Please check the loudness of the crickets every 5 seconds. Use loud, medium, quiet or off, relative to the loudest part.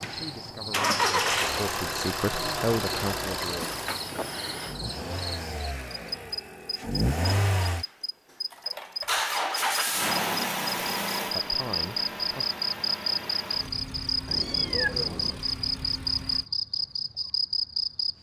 medium, medium, loud, loud.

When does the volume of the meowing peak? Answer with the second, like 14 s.
15 s.